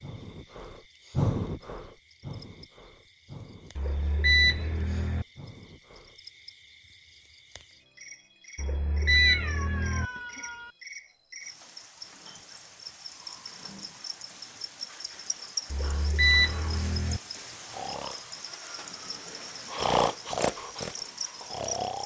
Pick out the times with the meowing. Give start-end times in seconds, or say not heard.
9.1-10.8.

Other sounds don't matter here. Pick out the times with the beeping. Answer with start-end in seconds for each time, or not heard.
3.8-5.2, 8.6-10.1, 15.7-17.2.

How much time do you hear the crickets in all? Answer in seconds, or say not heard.
22 s.